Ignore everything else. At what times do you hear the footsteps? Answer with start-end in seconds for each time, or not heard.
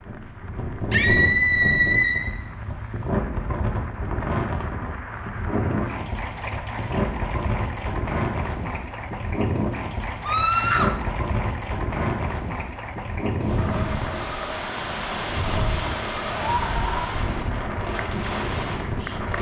not heard.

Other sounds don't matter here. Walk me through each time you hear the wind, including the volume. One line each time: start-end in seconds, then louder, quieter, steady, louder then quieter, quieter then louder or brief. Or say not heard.
0.0-19.3 steady.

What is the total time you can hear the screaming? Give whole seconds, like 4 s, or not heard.
3 s.